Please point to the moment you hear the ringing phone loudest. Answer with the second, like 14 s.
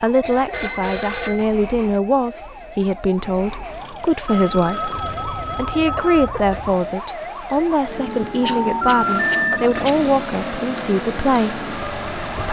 9 s.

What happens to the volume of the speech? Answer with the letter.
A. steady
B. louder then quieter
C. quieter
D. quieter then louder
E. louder
A.